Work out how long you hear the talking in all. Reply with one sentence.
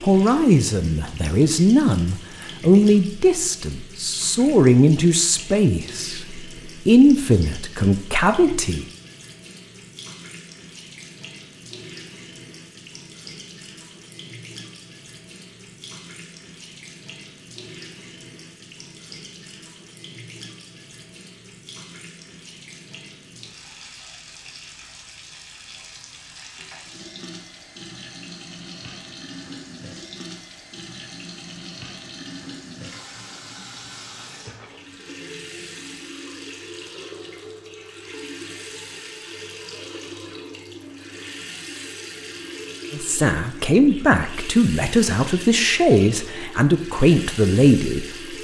You can hear the talking for 14 seconds altogether.